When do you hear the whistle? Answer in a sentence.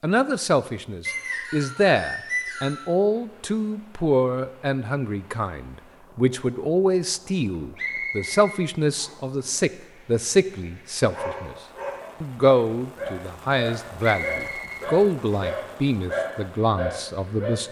The whistle can be heard from 1.1 to 2.9 s, from 7.8 to 9.2 s and from 14.0 to 15.5 s.